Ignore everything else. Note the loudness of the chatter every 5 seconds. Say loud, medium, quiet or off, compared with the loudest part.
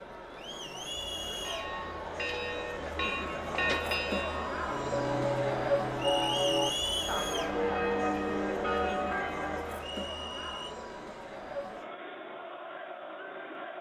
loud, loud, medium.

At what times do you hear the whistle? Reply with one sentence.
You can hear the whistle from 0.8 to 1.4 s, from 6.0 to 7.2 s and from 9.8 to 10.8 s.